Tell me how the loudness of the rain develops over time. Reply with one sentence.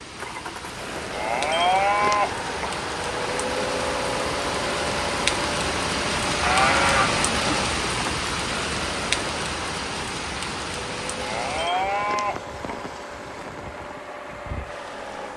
The volume of the rain goes up, then down.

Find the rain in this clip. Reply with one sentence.
The rain can be heard from 0.0 to 15.3 s.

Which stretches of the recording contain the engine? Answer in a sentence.
You can hear the engine from 0.0 to 15.3 s.